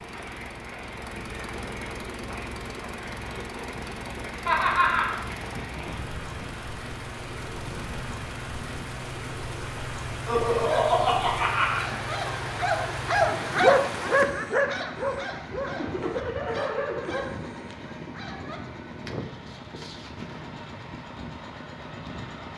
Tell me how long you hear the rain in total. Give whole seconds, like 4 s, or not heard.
14 s.